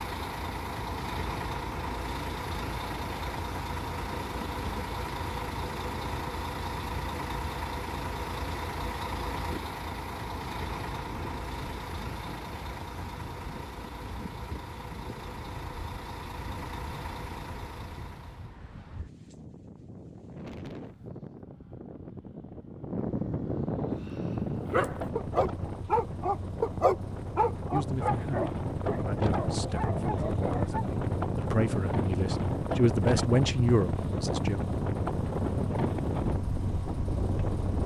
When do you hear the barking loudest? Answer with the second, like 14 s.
27 s.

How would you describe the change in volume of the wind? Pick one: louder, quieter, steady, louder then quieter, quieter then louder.
louder.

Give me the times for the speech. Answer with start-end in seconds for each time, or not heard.
27.7-34.6.